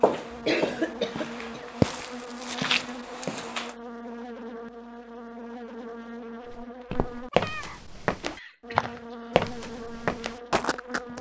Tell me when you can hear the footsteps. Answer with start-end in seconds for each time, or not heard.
0.0-3.8, 6.5-11.1.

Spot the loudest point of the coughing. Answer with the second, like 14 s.
1 s.